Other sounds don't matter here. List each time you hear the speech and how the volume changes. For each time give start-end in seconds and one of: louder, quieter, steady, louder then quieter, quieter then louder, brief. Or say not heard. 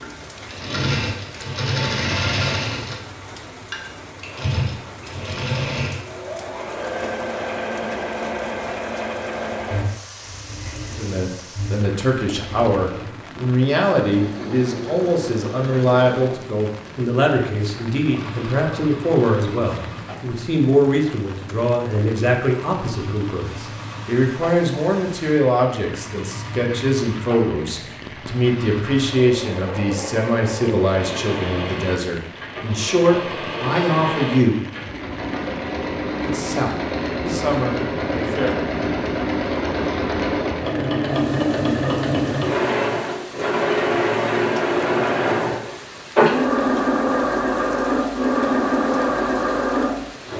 10.9-34.6 steady
36.2-38.7 brief.